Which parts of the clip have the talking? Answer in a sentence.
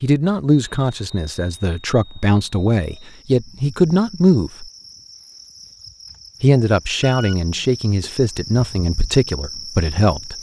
You can hear the talking from 0.0 to 4.7 s and from 6.4 to 10.3 s.